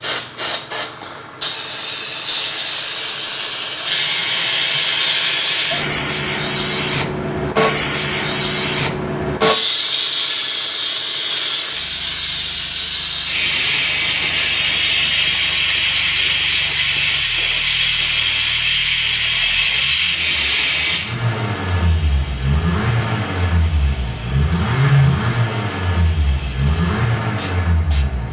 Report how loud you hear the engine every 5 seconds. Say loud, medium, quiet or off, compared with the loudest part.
quiet, quiet, quiet, quiet, loud, loud.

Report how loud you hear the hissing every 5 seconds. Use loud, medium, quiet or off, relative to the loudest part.
loud, loud, loud, loud, medium, quiet.